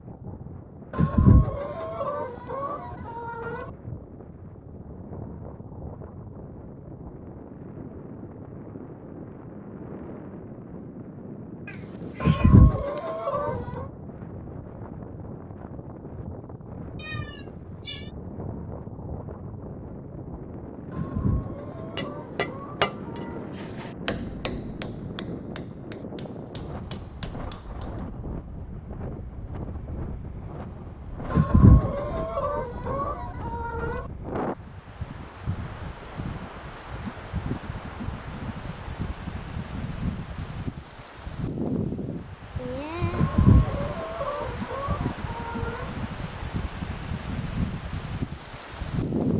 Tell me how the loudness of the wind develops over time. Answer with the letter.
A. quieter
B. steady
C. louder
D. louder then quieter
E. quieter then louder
C.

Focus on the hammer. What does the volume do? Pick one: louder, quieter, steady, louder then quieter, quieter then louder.
quieter.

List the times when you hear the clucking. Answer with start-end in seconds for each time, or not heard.
0.9-3.6, 12.2-13.8, 20.9-23.4, 31.3-34.0, 43.1-45.9.